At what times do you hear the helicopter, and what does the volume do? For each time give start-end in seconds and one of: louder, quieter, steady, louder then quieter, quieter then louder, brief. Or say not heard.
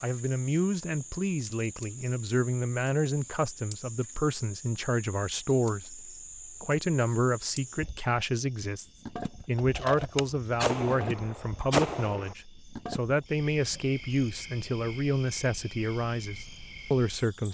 not heard.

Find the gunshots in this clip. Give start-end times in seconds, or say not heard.
9.6-12.3.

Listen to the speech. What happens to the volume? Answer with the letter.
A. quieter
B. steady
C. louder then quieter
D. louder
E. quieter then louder
B.